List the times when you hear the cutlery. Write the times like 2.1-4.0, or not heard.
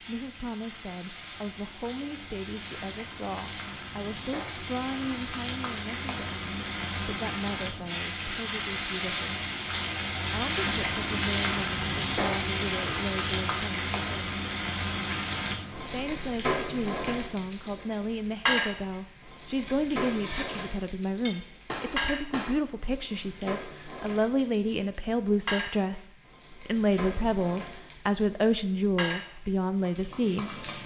19.6-22.6.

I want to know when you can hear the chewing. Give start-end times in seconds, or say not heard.
not heard.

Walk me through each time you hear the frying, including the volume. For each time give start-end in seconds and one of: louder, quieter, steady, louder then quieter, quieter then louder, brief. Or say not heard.
0.0-30.8 louder then quieter.